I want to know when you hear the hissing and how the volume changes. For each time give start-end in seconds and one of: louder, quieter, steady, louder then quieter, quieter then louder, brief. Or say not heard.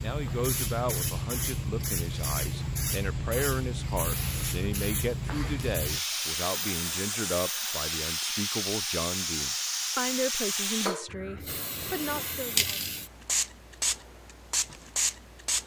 0.0-15.6 steady.